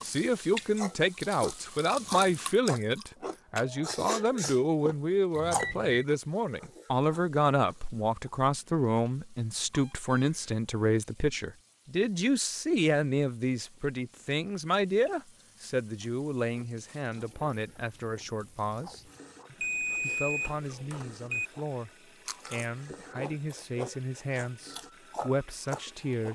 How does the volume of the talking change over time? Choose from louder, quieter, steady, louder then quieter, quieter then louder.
quieter.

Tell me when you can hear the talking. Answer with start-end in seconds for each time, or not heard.
0.0-26.3.